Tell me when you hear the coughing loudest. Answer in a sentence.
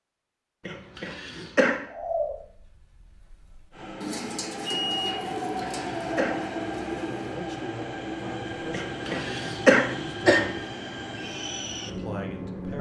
The volume of the coughing peaks at 10 seconds.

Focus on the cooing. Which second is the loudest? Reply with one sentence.
The loudest moment of the cooing is at 2 seconds.